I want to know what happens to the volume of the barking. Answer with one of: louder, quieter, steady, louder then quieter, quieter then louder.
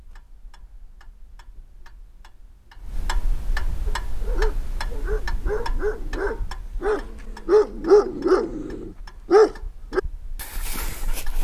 louder then quieter.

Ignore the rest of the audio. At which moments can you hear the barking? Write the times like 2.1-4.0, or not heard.
3.9-11.3.